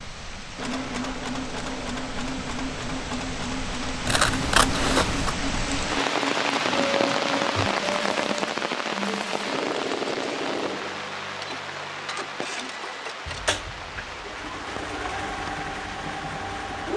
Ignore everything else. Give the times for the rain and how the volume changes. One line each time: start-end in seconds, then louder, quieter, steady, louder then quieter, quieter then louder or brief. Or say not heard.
0.0-16.9 louder then quieter.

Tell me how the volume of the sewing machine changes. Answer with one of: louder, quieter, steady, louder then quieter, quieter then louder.
steady.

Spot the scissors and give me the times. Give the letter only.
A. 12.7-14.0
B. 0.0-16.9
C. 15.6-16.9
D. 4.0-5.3
D.